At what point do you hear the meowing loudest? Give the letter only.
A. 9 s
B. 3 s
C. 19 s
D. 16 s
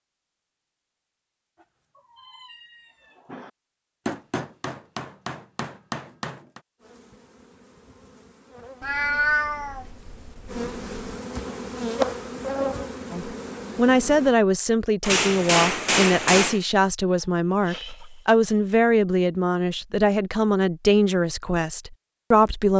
A.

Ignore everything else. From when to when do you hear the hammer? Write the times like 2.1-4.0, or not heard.
4.0-6.6, 15.0-16.6.